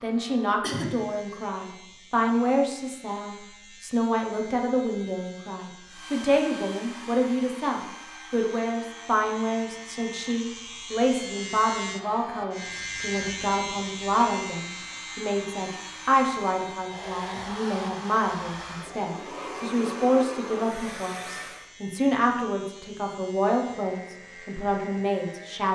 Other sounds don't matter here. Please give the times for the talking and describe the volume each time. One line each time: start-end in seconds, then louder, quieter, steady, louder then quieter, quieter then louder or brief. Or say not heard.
0.0-25.7 steady.